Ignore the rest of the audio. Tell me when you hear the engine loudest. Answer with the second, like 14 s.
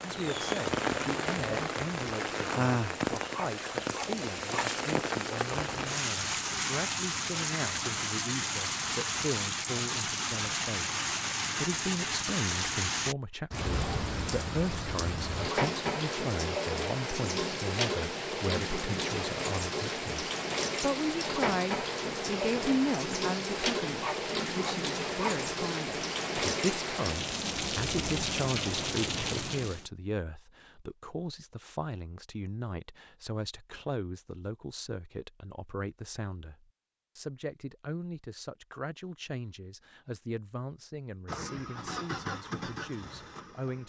42 s.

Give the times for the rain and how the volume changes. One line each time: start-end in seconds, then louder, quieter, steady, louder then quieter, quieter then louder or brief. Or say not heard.
0.0-29.9 steady.